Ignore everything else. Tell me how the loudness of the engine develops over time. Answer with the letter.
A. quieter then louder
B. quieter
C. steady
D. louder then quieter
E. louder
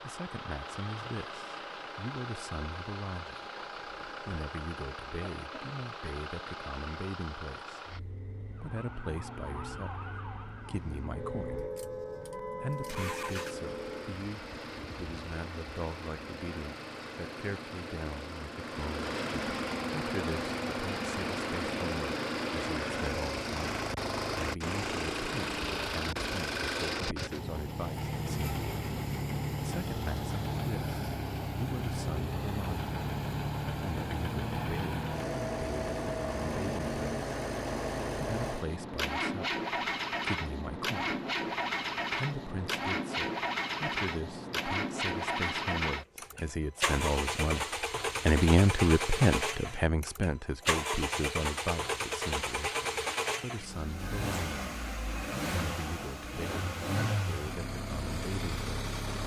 E.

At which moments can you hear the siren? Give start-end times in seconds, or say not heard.
8.6-14.2.